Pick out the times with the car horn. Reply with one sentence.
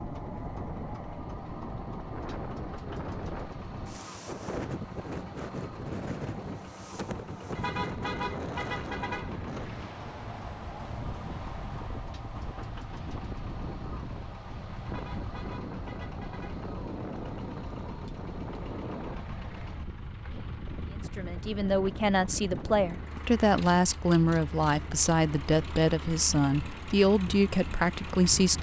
You can hear the car horn from 7.5 to 9.5 s and from 14.8 to 16.6 s.